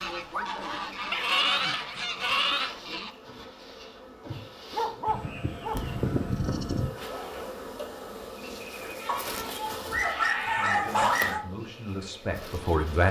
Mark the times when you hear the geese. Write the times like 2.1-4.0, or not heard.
0.0-3.1.